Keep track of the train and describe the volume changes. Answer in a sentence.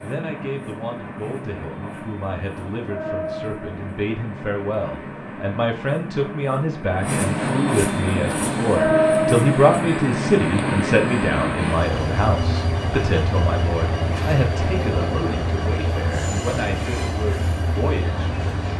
The loudness of the train goes up, then down.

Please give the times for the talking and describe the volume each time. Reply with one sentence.
The talking can be heard from 0.0 to 18.4 s, getting louder then quieter.